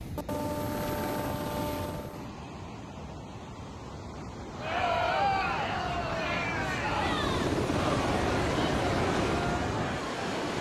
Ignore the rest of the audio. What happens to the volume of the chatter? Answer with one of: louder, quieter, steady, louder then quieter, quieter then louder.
quieter.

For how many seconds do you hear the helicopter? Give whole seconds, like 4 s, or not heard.
6 s.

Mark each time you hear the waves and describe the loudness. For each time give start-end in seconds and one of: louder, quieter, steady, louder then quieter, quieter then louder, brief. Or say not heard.
0.0-10.5 louder.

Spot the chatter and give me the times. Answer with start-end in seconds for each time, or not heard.
4.5-10.5.